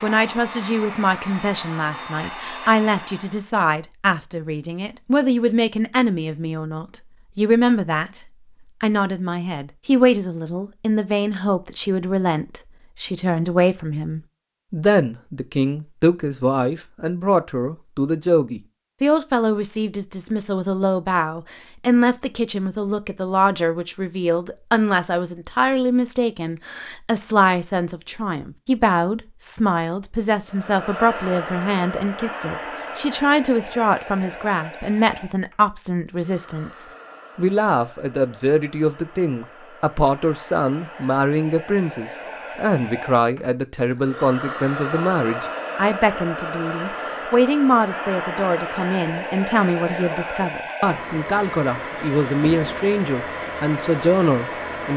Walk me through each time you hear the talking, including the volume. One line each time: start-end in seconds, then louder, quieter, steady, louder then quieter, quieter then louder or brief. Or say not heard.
0.0-54.9 steady.